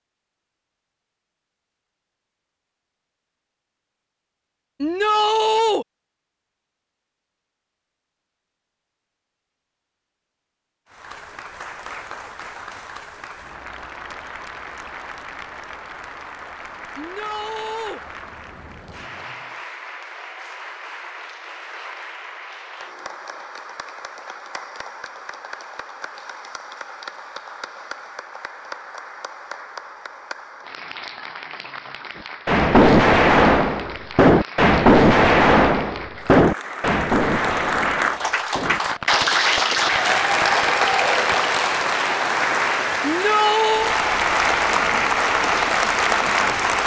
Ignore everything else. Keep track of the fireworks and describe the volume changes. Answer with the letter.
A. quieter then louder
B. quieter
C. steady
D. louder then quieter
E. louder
B.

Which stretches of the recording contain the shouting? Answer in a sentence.
The shouting can be heard from 4.8 to 5.8 s, from 16.9 to 18.0 s and from 43.0 to 44.0 s.